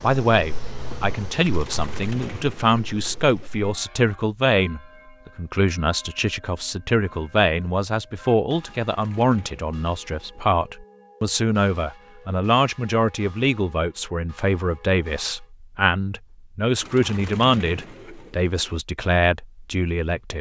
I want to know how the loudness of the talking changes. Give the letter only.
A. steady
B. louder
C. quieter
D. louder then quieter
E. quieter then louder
A.